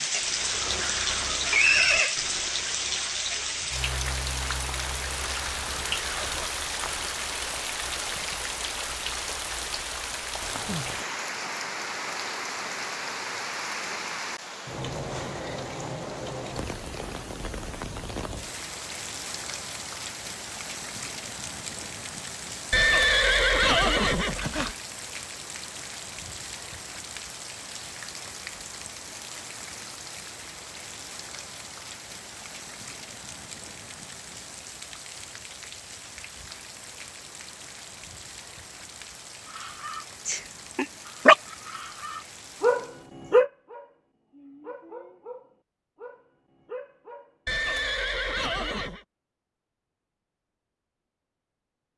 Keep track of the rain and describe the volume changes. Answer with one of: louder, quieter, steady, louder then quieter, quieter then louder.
quieter.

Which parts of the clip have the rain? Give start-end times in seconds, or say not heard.
0.0-43.1.